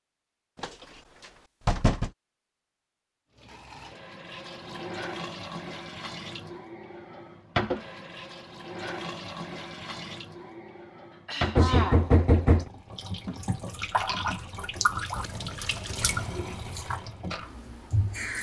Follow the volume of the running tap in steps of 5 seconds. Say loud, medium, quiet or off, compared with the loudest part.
medium, loud, loud, loud.